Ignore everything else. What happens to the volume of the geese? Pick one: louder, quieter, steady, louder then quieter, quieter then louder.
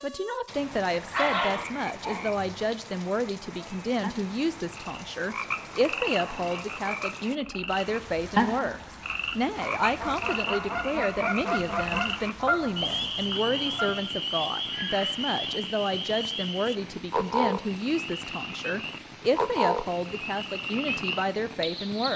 quieter.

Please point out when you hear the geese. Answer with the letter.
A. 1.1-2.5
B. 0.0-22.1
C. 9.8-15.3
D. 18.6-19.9
C.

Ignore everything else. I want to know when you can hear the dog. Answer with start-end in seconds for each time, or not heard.
1.1-2.5.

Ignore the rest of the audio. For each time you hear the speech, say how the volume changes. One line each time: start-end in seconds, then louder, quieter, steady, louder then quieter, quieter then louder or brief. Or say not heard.
0.0-22.1 steady.